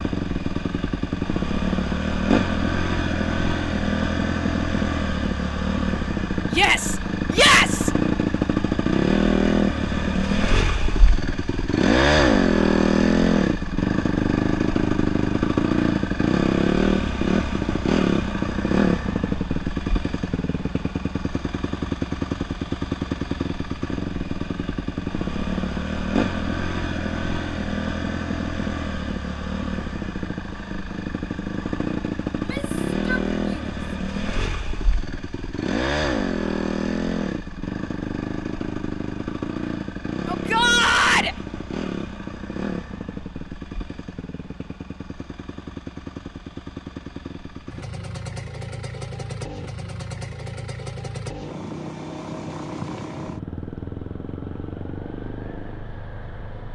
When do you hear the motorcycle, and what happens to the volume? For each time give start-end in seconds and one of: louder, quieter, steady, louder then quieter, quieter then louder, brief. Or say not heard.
0.0-56.7 quieter.